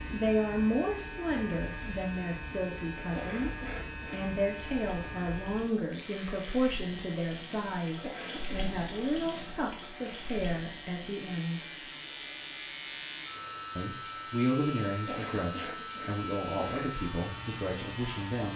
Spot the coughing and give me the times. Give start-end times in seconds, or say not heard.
3.1-4.2, 8.0-8.6, 15.1-16.9.